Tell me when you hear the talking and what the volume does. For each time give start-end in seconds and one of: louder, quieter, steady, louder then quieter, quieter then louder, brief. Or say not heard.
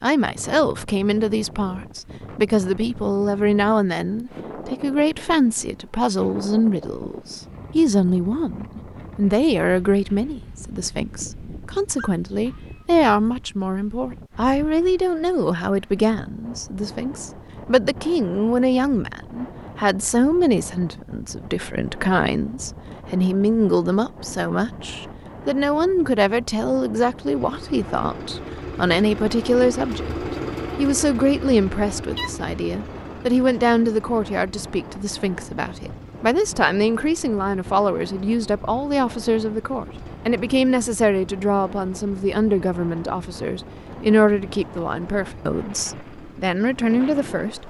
0.0-30.1 steady
30.8-47.6 steady.